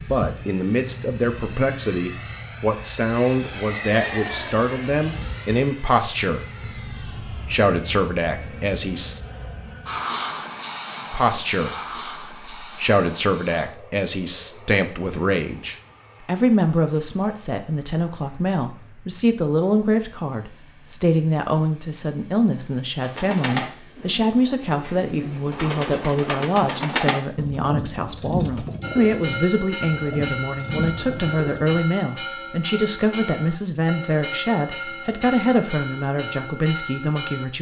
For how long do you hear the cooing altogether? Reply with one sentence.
The cooing can be heard for 9 seconds in total.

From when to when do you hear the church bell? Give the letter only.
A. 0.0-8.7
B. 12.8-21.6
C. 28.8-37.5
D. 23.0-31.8
C.